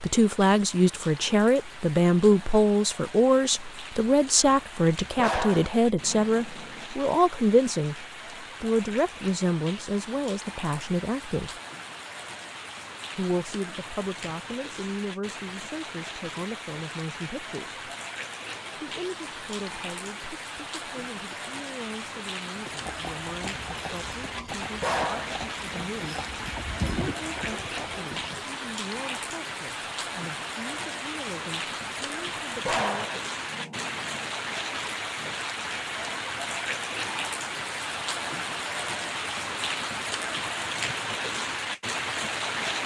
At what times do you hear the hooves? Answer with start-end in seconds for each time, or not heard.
22.6-28.6.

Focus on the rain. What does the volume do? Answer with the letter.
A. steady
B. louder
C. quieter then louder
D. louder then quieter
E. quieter
B.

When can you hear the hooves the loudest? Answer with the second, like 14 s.
27 s.